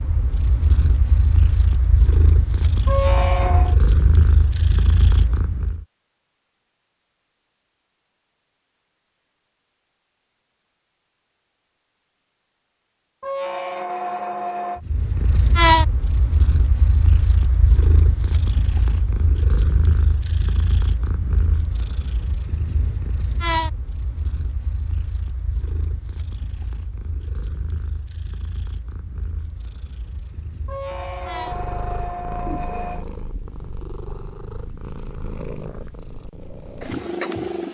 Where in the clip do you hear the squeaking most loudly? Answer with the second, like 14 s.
3 s.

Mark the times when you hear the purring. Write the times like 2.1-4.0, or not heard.
0.0-5.8, 14.8-37.6.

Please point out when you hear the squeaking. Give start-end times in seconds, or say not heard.
2.9-3.8, 13.2-14.8, 30.6-33.0.